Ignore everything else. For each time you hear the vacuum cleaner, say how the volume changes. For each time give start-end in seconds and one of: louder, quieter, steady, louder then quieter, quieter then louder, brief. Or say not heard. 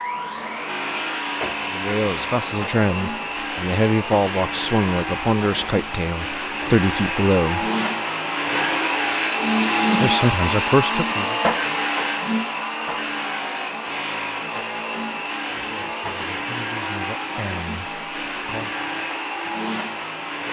0.0-20.4 louder then quieter.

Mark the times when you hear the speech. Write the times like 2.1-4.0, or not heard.
1.6-7.7, 10.0-11.4, 15.5-18.7.